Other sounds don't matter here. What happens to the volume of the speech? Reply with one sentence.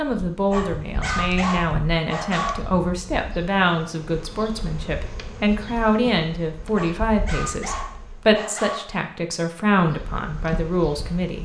The volume of the speech stays about the same.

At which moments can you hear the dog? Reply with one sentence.
The dog can be heard from 0.5 to 2.6 s and from 6.7 to 8.9 s.